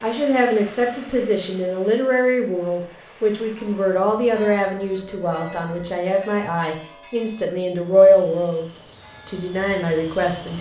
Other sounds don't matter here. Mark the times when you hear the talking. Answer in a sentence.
The talking can be heard from 0.0 to 10.5 s.